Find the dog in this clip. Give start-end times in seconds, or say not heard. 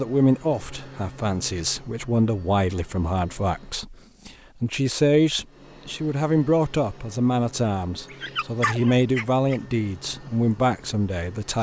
8.1-9.6.